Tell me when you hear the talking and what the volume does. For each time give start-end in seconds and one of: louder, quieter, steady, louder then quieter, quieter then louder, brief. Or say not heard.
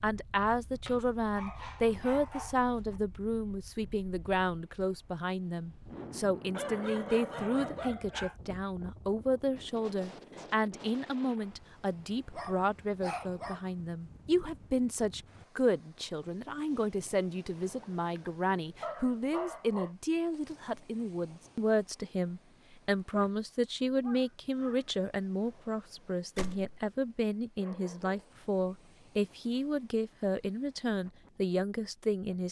0.0-32.4 steady.